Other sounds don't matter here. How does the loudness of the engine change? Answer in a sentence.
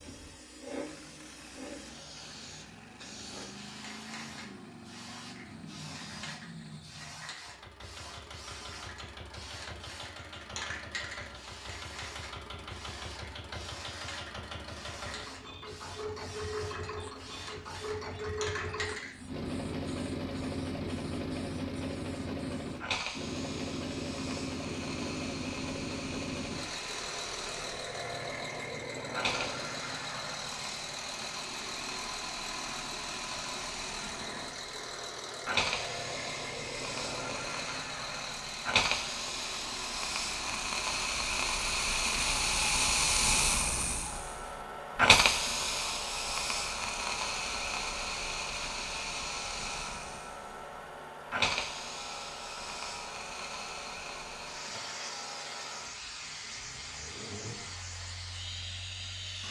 The loudness of the engine goes up, then down.